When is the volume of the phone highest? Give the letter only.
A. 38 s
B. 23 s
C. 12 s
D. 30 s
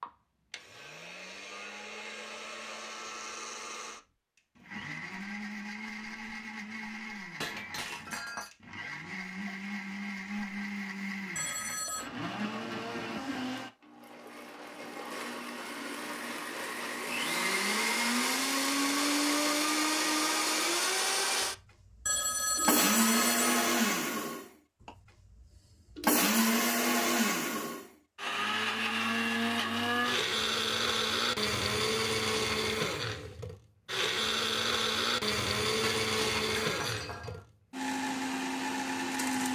B.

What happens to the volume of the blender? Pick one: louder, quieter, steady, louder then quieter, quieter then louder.
louder.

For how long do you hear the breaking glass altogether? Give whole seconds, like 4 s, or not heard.
3 s.